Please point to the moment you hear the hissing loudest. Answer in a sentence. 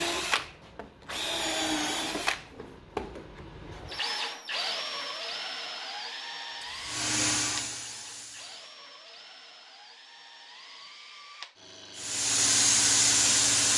The volume of the hissing peaks at 13 seconds.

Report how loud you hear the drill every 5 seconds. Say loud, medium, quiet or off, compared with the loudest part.
loud, medium, quiet.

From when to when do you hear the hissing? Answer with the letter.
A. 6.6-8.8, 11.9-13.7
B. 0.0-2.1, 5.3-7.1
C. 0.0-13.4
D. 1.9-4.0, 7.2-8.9
A.